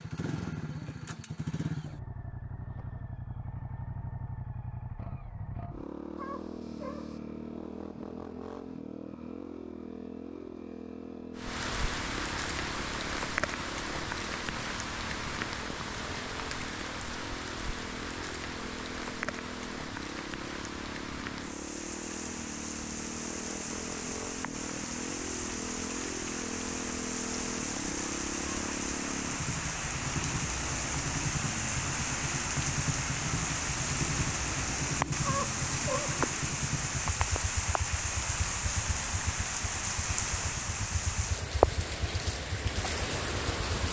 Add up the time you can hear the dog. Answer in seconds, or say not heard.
2 s.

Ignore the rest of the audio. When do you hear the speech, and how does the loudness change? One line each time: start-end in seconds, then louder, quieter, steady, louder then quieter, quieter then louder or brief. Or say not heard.
not heard.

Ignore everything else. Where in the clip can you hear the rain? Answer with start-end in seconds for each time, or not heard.
11.3-43.8.